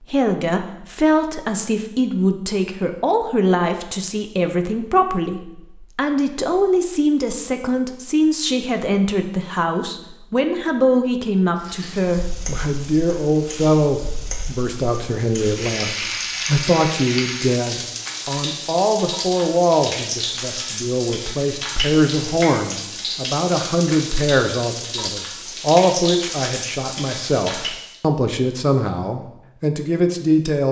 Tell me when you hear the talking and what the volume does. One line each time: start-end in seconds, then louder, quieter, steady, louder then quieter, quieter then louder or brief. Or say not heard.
0.0-30.6 steady.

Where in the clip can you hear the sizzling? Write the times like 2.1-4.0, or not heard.
11.6-28.0.